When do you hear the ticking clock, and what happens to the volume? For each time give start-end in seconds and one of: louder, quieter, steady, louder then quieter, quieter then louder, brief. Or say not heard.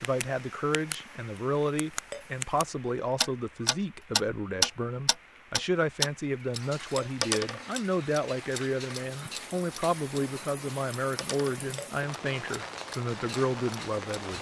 0.0-14.3 louder then quieter.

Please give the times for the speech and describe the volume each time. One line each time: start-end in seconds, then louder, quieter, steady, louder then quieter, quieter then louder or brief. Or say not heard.
0.0-14.3 steady.